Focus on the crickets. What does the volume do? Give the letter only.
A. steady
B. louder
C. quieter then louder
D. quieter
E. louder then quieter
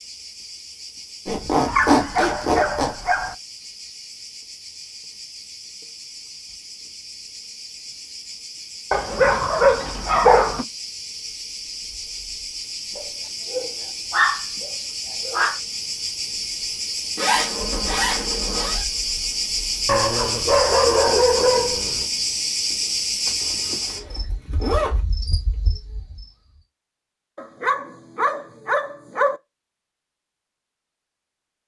B.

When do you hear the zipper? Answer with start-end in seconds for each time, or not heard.
1.2-3.0, 17.1-18.9, 23.2-25.0.